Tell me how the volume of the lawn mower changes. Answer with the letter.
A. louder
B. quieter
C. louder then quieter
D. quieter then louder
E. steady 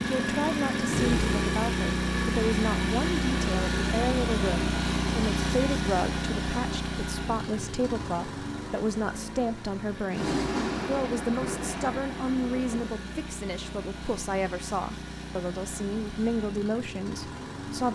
B.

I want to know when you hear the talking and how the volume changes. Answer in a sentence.
You can hear the talking from 0.0 to 17.8 s, at a steady volume.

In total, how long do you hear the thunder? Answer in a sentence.
The thunder can be heard for 3 seconds in total.